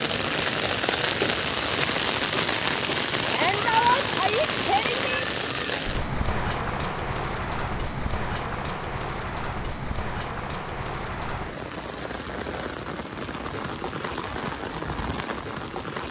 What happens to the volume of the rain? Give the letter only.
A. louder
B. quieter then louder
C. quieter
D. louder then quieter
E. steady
C.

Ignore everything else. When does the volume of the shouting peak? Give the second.
4 s.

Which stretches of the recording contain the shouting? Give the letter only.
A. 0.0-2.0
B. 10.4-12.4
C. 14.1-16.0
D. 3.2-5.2
D.